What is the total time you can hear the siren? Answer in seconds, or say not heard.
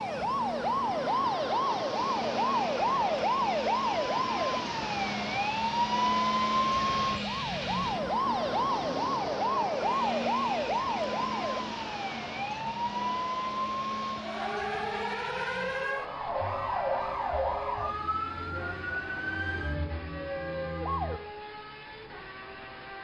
21 s.